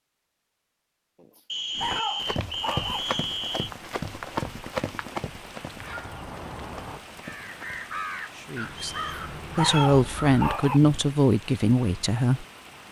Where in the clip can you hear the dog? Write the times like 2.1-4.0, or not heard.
1.2-3.0, 8.9-10.8.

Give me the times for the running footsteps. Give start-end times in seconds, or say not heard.
1.8-8.0.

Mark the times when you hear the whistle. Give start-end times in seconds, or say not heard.
1.4-3.7, 8.8-10.0.